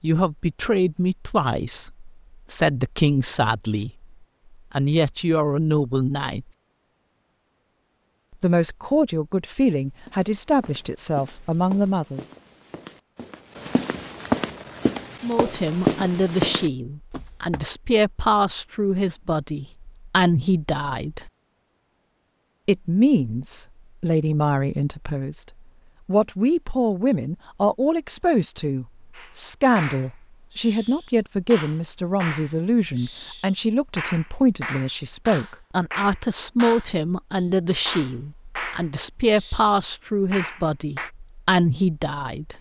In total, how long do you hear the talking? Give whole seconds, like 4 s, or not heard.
35 s.